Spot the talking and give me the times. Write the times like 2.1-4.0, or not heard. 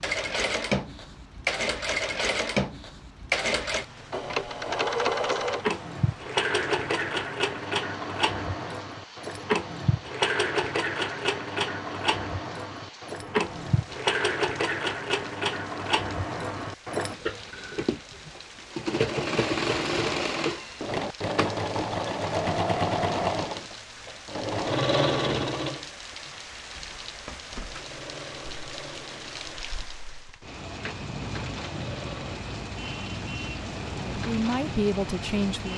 34.0-35.7.